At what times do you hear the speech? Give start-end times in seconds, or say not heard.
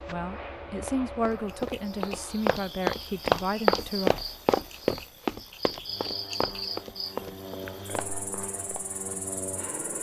0.1-4.1.